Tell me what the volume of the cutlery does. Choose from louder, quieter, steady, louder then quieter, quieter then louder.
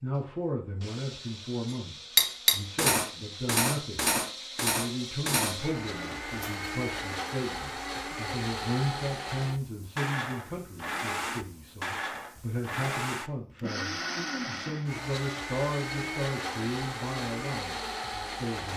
quieter.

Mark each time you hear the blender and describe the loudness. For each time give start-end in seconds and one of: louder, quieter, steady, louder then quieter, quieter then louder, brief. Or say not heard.
0.0-18.7 louder.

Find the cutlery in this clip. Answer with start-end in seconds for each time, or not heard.
2.1-6.7.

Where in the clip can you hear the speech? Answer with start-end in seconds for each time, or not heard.
0.0-18.7.